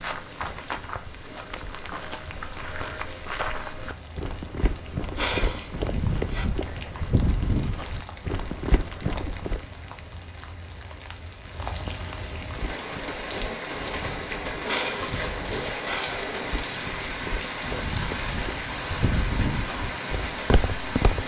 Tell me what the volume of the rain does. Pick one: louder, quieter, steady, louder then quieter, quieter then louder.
louder.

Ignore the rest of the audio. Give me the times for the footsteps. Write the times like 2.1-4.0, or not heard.
0.0-9.7, 12.4-21.2.